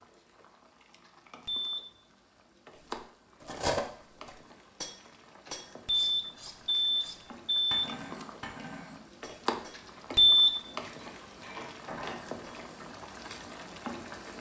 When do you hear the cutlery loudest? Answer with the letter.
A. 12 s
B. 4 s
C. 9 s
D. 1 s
B.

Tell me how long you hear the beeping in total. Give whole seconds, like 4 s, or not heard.
3 s.